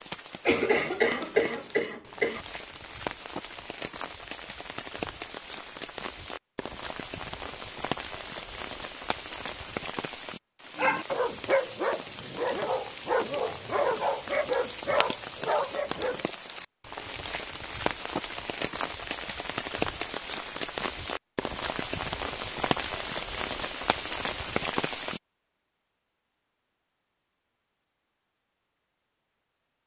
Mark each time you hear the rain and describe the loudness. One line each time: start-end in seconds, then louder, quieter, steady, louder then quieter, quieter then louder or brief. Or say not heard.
0.0-25.2 louder.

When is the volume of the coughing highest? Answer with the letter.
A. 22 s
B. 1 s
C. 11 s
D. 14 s
B.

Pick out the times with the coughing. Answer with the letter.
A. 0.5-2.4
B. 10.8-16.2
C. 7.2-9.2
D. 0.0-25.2
A.